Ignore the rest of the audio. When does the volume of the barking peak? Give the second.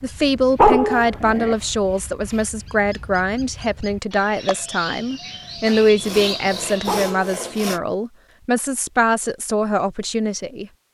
1 s.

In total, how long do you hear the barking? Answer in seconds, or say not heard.
2 s.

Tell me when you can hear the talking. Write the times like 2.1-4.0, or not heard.
0.0-10.7.